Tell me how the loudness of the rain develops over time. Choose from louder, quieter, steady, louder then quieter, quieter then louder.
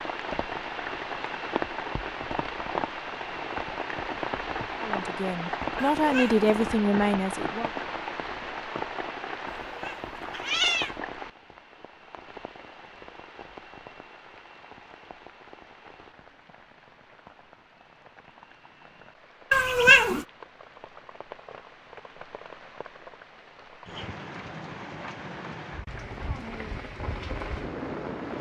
quieter then louder.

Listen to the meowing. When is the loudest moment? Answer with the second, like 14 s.
20 s.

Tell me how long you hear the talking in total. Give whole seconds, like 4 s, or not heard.
3 s.